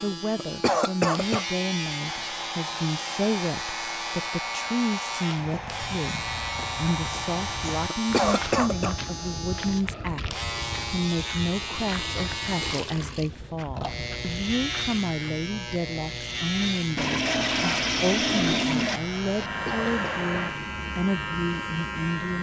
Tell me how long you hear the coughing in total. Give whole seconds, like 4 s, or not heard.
3 s.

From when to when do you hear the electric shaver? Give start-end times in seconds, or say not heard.
0.0-22.3.